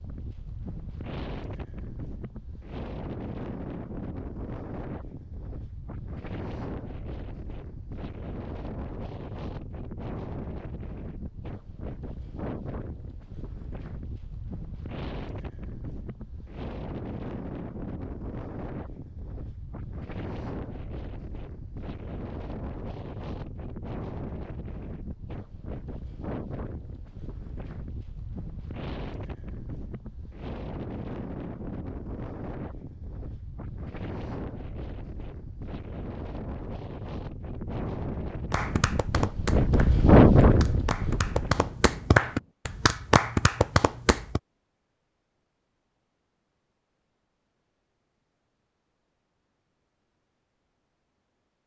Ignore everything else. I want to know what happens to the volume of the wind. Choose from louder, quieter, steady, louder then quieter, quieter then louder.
louder.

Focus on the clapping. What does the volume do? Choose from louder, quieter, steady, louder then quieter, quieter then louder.
louder.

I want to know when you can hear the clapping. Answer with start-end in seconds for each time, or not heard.
38.5-44.4.